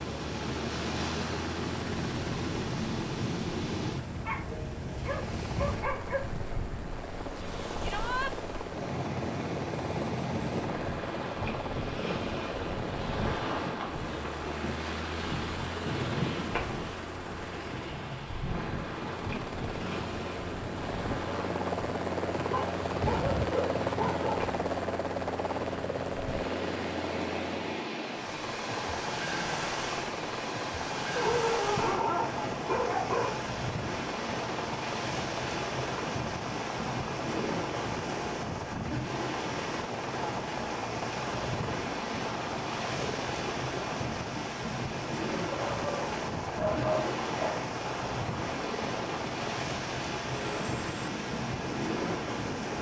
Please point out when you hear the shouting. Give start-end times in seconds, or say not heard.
7.8-8.3.